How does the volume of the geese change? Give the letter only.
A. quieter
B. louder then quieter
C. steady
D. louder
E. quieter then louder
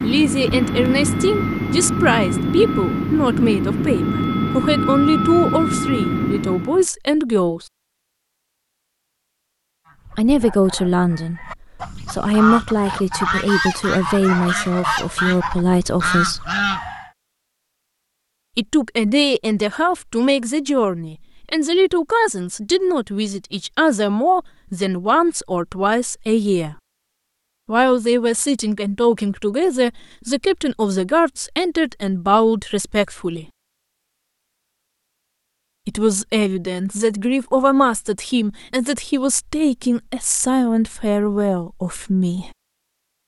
D.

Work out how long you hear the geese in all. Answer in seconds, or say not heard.
7 s.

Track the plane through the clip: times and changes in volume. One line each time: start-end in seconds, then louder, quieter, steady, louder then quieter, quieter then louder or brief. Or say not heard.
0.0-6.8 steady.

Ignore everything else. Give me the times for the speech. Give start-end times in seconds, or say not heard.
0.0-7.7, 10.2-11.4, 12.1-16.5, 18.6-26.8, 27.6-33.5, 35.9-42.5.